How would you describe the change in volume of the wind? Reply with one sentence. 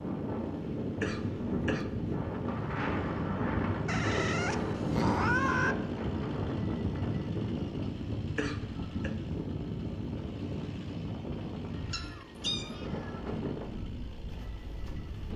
The loudness of the wind goes down.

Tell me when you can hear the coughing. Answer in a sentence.
The coughing can be heard from 1.0 to 1.9 s and from 8.3 to 9.2 s.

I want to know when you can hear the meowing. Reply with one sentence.
You can hear the meowing from 3.9 to 5.8 s and from 11.9 to 13.2 s.